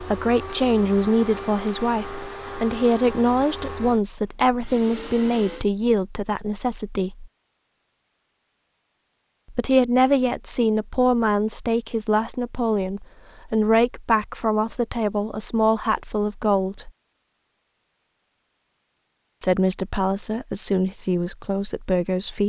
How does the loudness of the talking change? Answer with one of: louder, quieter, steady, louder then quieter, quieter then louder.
steady.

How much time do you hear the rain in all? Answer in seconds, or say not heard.
not heard.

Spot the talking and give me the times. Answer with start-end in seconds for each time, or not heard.
0.0-7.3, 9.5-16.9, 19.4-22.4.